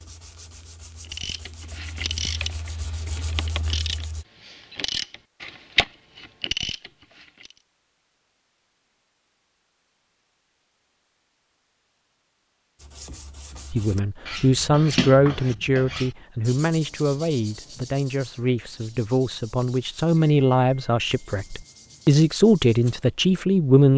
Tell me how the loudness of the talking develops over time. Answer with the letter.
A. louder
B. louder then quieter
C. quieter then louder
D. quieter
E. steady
C.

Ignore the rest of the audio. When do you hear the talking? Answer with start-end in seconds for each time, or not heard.
13.7-23.9.